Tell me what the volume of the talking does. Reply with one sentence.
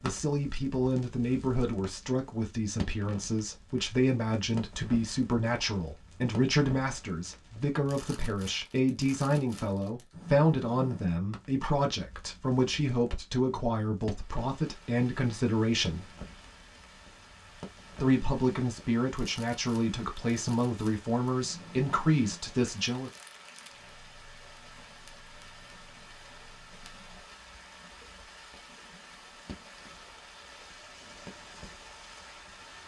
The volume of the talking stays about the same.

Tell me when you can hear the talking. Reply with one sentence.
The talking can be heard from 0.0 to 16.1 s and from 18.0 to 23.1 s.